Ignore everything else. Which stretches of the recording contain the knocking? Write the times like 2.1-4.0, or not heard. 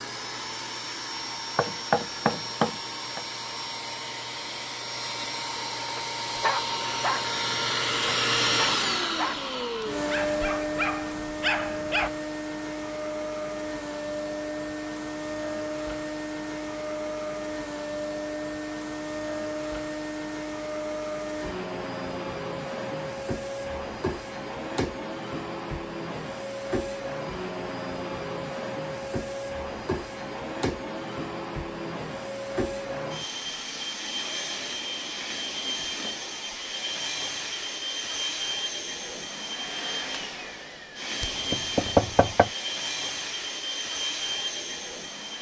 1.6-3.2, 41.2-42.5.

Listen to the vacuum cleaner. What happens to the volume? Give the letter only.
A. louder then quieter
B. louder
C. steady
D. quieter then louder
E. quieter
C.